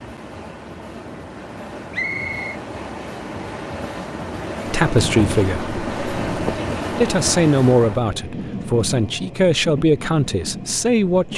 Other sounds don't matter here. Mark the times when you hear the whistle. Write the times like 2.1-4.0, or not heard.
1.9-2.6.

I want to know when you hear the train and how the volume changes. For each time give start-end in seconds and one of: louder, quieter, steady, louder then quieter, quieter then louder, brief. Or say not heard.
0.0-11.3 louder then quieter.